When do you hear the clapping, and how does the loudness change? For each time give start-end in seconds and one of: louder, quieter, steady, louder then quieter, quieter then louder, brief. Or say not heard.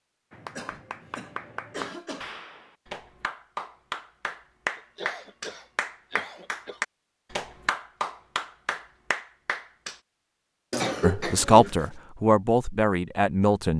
0.3-10.0 louder.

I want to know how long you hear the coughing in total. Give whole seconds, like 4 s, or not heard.
5 s.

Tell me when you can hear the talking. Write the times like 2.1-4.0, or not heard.
11.0-13.7.